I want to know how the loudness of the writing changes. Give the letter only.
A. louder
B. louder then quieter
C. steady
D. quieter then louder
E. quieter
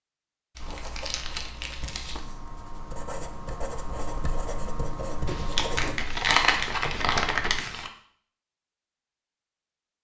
A.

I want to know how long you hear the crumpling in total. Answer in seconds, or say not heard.
4 s.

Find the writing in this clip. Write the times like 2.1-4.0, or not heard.
0.6-6.0.